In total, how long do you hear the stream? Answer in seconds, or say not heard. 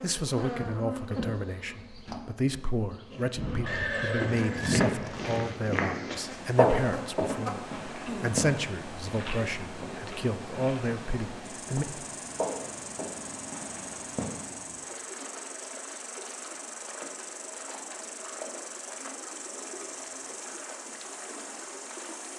16 s.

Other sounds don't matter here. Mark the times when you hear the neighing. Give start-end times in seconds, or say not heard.
3.6-4.8.